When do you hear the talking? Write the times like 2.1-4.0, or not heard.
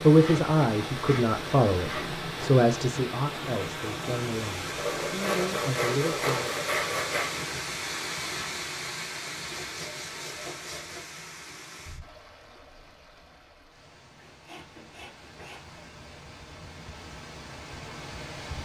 0.0-6.5.